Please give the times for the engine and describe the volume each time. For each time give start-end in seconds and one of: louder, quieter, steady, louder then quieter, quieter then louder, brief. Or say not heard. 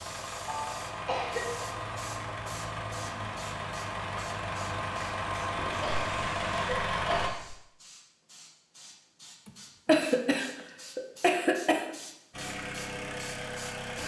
0.0-7.3 louder
12.3-14.0 brief.